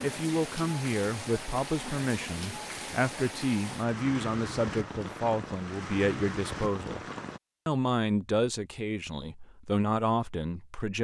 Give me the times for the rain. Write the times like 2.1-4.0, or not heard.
0.0-7.4.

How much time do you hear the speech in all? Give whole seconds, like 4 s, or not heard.
10 s.